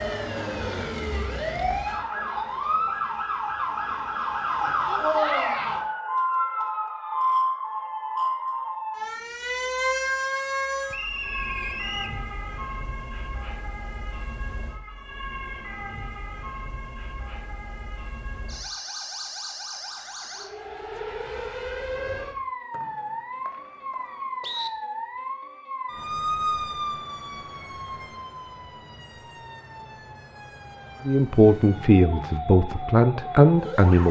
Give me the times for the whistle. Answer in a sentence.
You can hear the whistle from 10.9 to 12.2 s and from 22.7 to 24.7 s.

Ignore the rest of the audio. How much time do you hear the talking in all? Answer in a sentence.
The talking can be heard for 3 seconds in total.